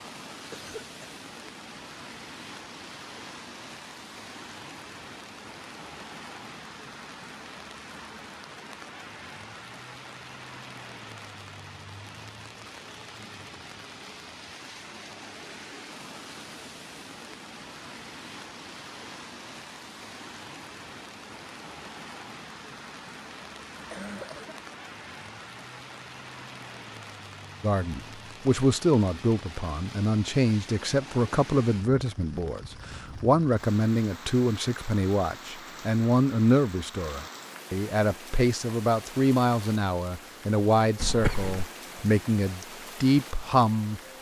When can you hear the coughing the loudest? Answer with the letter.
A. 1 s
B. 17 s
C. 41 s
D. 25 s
C.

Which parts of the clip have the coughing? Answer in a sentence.
The coughing can be heard from 0.5 to 1.1 s, from 23.7 to 24.6 s and from 41.0 to 41.5 s.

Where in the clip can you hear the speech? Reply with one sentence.
You can hear the speech from 27.6 to 44.0 s.